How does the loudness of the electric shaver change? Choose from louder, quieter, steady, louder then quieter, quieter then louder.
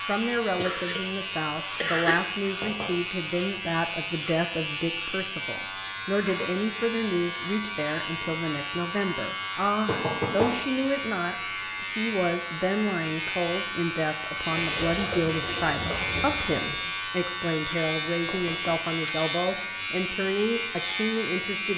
steady.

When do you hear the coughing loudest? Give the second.
2 s.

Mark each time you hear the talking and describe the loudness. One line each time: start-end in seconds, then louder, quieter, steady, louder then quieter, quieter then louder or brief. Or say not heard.
0.1-21.7 steady.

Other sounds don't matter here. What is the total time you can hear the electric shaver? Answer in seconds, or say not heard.
22 s.